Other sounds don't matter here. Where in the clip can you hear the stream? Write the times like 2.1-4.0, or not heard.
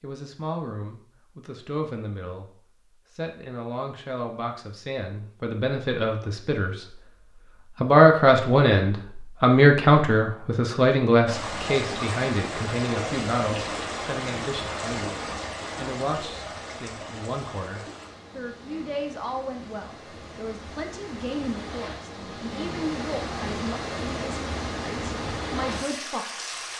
11.2-26.7.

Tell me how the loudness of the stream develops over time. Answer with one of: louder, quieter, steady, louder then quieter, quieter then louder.
quieter then louder.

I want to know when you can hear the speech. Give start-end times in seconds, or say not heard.
0.0-2.5, 3.1-7.0, 7.8-26.4.